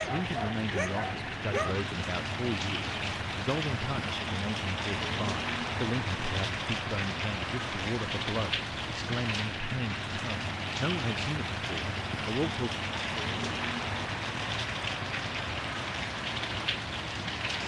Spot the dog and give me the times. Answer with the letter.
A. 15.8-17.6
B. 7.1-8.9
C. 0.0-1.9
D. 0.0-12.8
C.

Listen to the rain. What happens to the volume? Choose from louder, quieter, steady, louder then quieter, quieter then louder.
steady.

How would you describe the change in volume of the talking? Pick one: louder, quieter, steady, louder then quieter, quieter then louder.
steady.